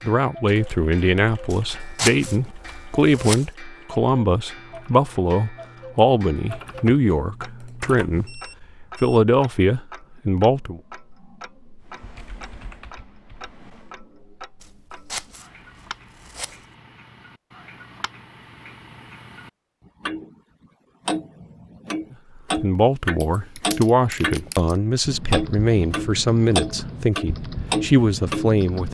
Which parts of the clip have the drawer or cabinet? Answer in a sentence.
You can't hear the drawer or cabinet here.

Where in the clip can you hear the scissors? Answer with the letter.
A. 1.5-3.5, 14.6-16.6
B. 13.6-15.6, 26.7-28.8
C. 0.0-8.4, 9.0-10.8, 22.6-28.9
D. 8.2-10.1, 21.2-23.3
A.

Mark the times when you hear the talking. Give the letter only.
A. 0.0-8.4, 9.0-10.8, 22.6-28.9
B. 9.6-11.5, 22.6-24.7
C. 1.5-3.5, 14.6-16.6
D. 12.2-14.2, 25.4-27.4
A.